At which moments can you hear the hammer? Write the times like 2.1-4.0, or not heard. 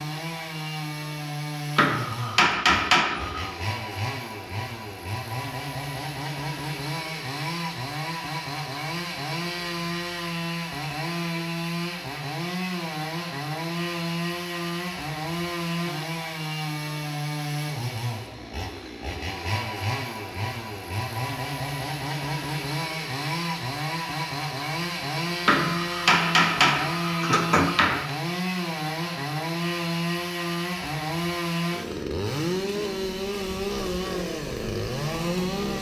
1.8-3.5, 25.4-28.1.